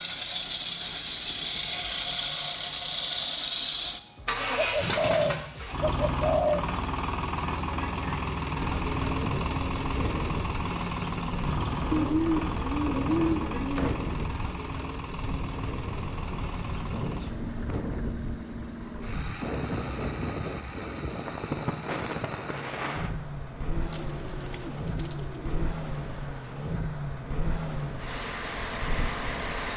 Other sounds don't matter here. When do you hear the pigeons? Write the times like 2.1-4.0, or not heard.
4.5-6.8, 11.9-13.9, 23.6-25.7.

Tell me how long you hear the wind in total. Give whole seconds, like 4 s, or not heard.
21 s.